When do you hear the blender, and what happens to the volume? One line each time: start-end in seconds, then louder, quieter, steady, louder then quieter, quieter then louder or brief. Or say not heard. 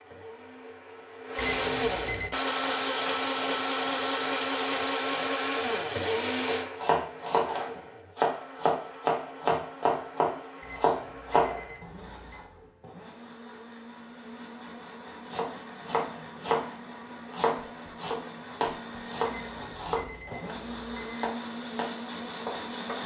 0.0-23.0 quieter then louder.